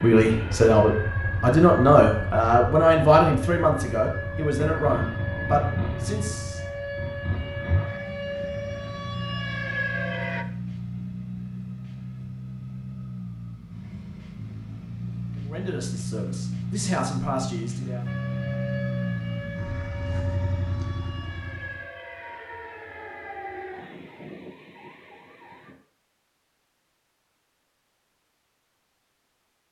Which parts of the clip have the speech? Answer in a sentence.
The speech can be heard from 0.0 to 6.6 s and from 15.3 to 18.1 s.